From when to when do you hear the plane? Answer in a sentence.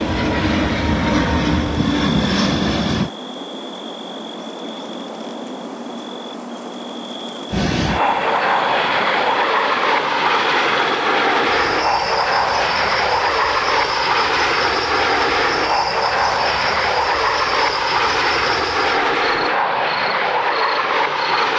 You can hear the plane from 0.0 to 3.1 s and from 7.5 to 21.5 s.